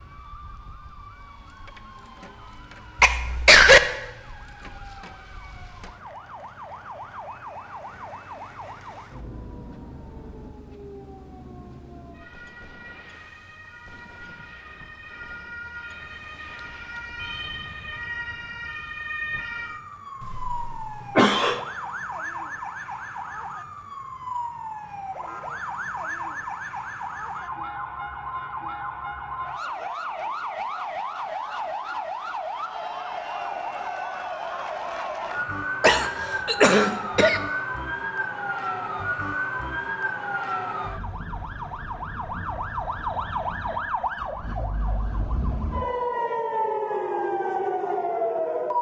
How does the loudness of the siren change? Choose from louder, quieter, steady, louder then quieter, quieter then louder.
louder.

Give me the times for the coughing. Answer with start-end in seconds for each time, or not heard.
3.0-3.8, 20.2-21.6, 35.8-37.4.